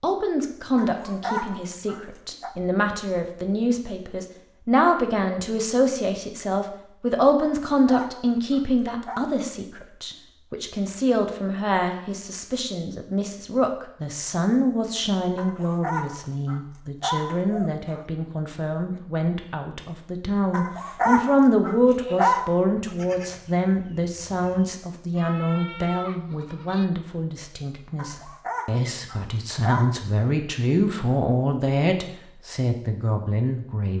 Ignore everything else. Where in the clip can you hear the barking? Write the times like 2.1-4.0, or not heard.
0.8-2.5, 7.4-9.2, 15.3-18.1, 20.5-22.5, 27.9-29.9.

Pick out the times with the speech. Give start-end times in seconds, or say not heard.
0.0-33.9.